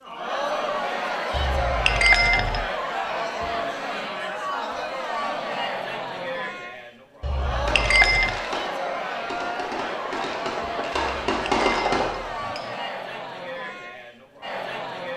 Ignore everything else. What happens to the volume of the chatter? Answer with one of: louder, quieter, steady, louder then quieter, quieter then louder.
quieter.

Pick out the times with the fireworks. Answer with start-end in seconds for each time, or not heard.
7.5-12.3.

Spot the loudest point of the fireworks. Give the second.
12 s.